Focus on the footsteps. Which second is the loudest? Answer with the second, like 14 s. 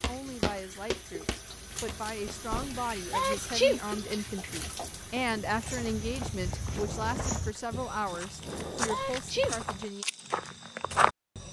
11 s.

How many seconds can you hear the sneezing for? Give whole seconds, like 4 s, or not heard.
2 s.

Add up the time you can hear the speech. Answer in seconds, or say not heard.
10 s.